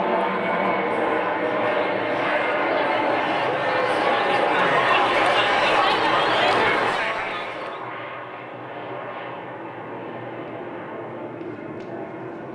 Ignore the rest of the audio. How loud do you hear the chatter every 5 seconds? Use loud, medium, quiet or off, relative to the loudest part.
medium, loud, off.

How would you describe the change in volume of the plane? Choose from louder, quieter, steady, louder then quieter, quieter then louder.
quieter.